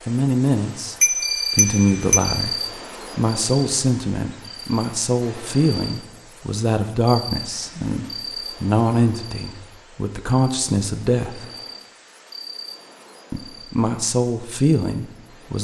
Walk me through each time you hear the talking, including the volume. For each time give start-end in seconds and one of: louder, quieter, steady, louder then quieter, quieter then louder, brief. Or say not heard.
0.1-11.4 steady
13.3-15.5 brief.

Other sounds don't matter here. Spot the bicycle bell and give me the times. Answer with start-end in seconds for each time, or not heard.
1.0-2.4.